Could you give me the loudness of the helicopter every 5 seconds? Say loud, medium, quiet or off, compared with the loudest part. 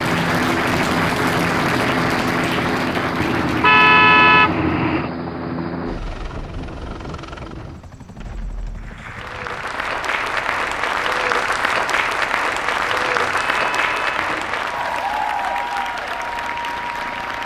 loud, medium, quiet, quiet.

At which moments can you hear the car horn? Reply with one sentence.
You can hear the car horn from 3.2 to 5.1 s and from 12.9 to 14.6 s.